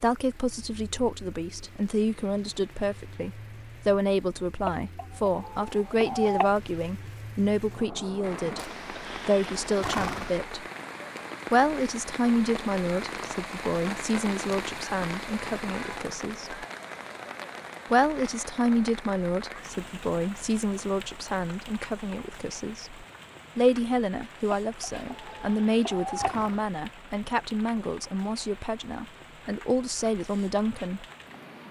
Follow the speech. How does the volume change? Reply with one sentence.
The volume of the speech stays about the same.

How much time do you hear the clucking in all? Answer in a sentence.
You can hear the clucking for 4 seconds altogether.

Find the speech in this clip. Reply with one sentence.
You can hear the speech from 0.0 to 10.7 s, from 11.5 to 16.6 s and from 17.9 to 31.1 s.